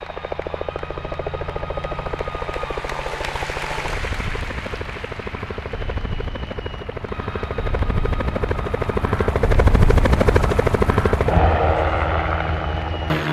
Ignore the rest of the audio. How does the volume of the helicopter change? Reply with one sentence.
The volume of the helicopter goes up.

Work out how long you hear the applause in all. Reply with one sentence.
You can hear the applause for 13 seconds altogether.